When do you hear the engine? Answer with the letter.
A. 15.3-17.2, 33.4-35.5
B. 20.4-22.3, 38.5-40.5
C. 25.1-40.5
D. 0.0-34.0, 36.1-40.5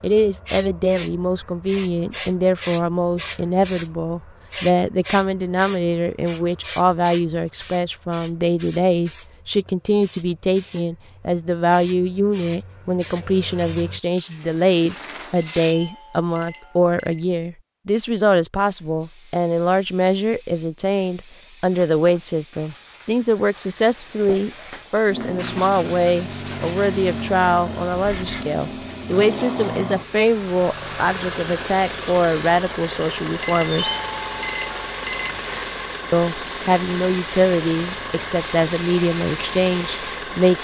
C.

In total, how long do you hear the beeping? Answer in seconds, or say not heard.
4 s.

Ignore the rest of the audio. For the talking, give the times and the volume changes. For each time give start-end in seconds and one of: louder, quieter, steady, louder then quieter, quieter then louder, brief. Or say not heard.
0.0-34.0 steady
36.1-40.5 steady.